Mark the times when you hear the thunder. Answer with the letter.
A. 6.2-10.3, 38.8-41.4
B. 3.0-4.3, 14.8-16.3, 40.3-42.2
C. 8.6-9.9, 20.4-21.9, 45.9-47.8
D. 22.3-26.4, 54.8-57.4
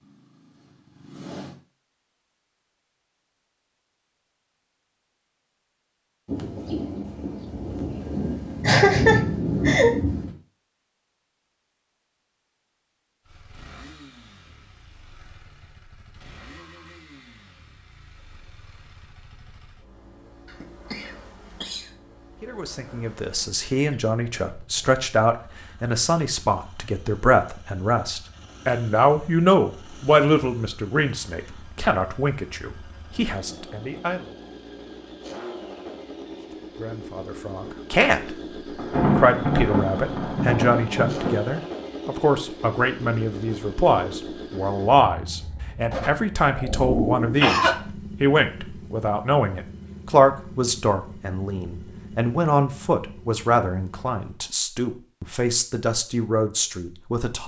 A.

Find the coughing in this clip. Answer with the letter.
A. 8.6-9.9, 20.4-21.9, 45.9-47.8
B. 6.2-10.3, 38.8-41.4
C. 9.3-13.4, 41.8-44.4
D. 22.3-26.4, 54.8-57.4
A.